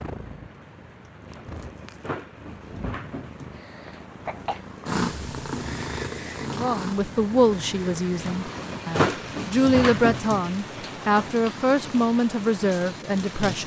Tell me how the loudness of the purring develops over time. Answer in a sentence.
The volume of the purring goes up, then down.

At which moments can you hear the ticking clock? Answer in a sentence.
The ticking clock can't be heard in this clip.